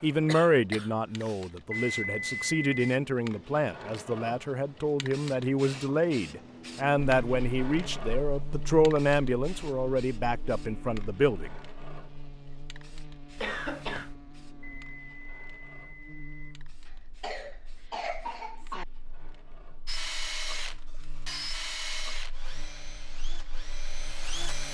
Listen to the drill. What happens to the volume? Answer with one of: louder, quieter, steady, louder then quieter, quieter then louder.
quieter.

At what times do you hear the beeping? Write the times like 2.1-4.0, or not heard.
1.7-2.8, 14.6-16.6.